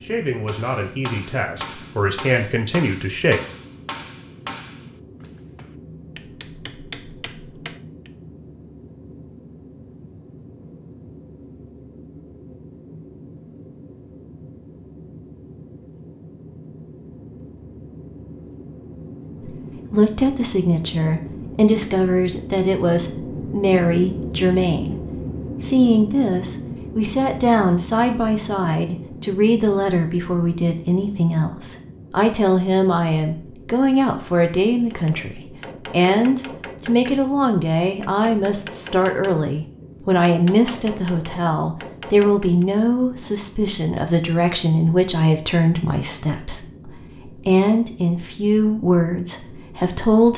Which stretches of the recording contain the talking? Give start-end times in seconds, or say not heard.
0.0-3.4, 19.4-24.9, 25.6-50.3.